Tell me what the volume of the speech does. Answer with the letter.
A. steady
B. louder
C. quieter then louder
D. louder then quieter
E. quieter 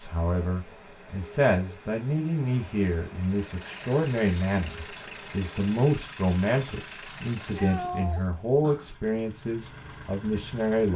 A.